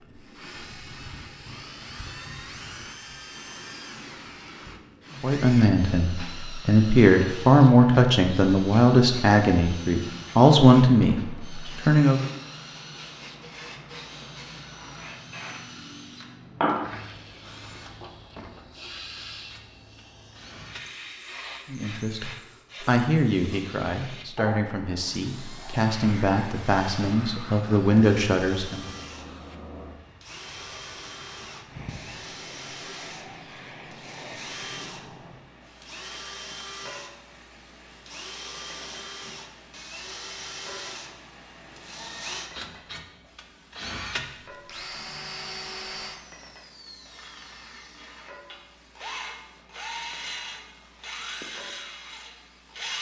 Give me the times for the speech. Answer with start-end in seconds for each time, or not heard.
5.2-12.2, 21.7-28.9.